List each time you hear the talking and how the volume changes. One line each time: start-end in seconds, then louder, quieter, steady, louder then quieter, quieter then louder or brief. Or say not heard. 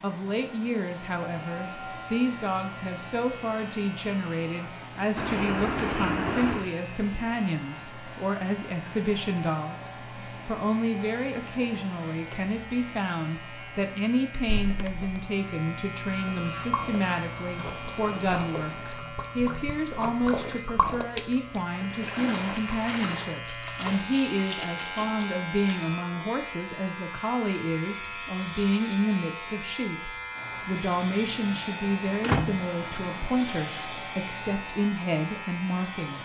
0.0-36.2 steady.